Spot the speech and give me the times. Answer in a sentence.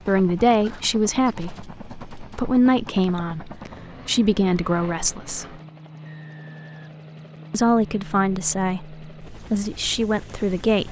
The speech can be heard from 0.1 to 5.5 s and from 7.5 to 10.8 s.